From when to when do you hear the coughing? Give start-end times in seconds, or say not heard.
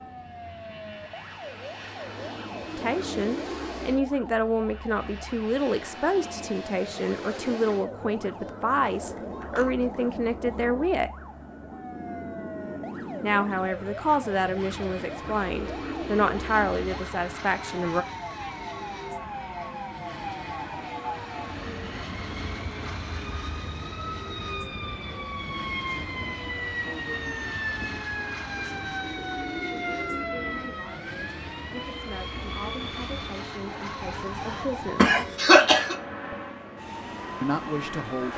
8.8-10.6, 34.5-36.0.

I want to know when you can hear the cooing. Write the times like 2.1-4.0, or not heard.
2.1-3.5, 15.0-16.9, 28.6-30.7.